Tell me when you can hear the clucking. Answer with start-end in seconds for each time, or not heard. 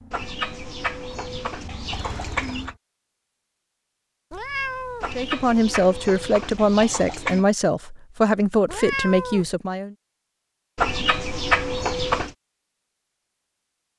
0.1-2.8, 5.0-7.5, 10.8-12.3.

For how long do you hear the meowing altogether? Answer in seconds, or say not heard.
2 s.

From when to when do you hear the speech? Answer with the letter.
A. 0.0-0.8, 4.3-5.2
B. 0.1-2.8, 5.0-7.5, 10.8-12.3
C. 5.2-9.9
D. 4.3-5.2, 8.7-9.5
C.